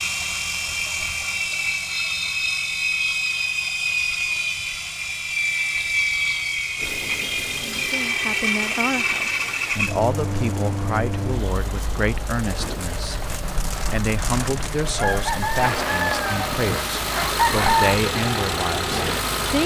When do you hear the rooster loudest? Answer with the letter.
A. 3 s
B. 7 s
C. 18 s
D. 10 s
C.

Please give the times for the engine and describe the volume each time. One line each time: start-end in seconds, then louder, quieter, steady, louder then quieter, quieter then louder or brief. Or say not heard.
0.0-19.6 quieter then louder.